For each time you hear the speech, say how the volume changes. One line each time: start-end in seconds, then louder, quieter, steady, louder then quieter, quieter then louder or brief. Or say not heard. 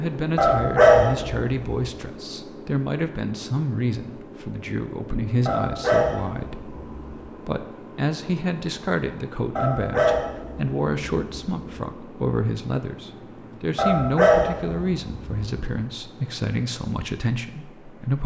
0.0-18.2 steady.